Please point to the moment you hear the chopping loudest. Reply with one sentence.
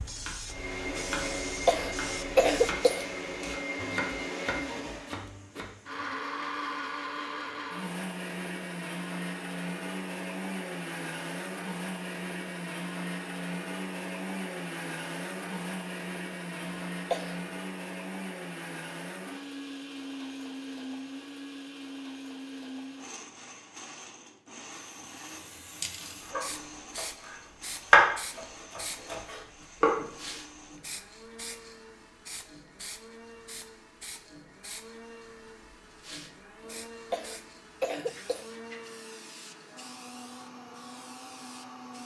The volume of the chopping peaks at 28 seconds.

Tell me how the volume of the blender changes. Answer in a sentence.
The loudness of the blender goes down.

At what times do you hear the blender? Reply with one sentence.
You can hear the blender from 0.0 to 42.0 s.